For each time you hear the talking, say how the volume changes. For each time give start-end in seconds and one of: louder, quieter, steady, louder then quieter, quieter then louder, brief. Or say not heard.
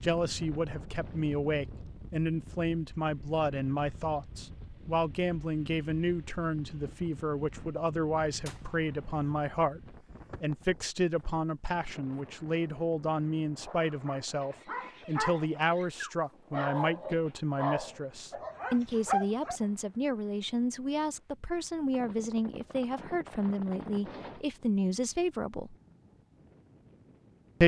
0.0-25.8 steady.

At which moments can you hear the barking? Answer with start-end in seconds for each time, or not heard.
13.8-19.6.